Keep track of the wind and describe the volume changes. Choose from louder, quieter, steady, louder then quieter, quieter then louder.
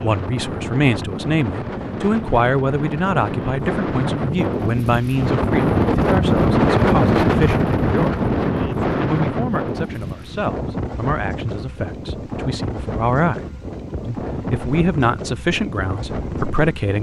louder then quieter.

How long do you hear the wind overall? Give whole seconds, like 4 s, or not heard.
17 s.